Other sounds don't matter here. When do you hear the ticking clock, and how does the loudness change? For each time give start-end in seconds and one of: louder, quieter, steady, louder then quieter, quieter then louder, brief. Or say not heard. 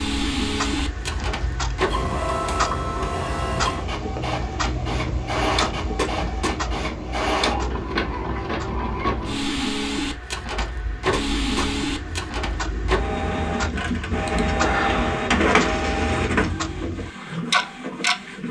0.0-18.2 quieter then louder.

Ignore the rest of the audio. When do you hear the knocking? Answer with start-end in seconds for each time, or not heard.
6.0-6.5, 11.1-11.7.